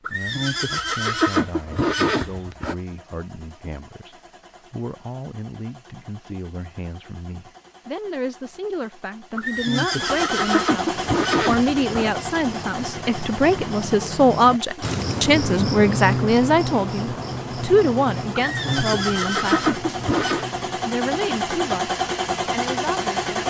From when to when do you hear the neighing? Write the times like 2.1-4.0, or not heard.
0.1-2.8, 9.3-12.1, 18.4-20.4.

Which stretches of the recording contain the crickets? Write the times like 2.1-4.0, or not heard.
10.9-23.4.